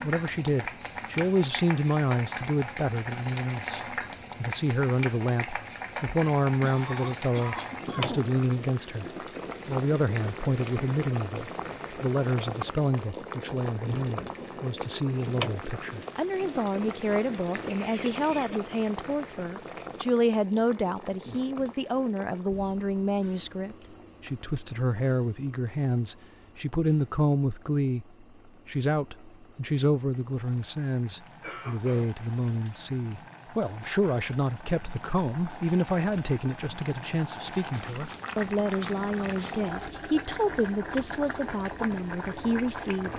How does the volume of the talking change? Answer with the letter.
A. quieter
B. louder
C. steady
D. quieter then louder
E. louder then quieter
C.